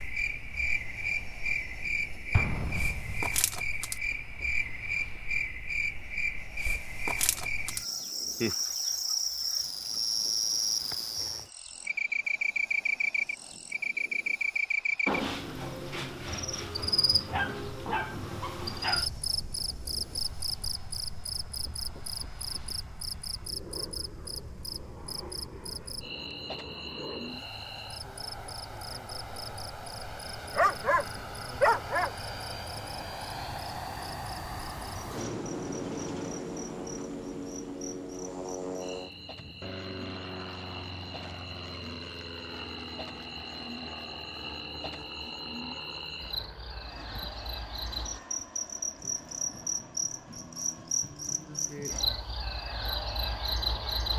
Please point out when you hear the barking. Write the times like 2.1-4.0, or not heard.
17.3-19.1, 30.6-32.1.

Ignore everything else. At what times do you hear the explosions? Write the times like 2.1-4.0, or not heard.
2.3-3.6.